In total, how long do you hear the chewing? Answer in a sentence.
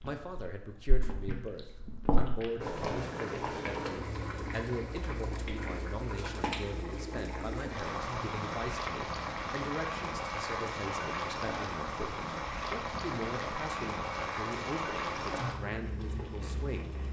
You can hear the chewing for 3 seconds altogether.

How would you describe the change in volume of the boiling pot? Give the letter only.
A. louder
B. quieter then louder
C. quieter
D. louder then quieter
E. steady
E.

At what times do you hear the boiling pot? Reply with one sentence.
You can hear the boiling pot from 2.6 to 17.0 s.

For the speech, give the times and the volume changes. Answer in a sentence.
You can hear the speech from 0.0 to 17.0 s, at a steady volume.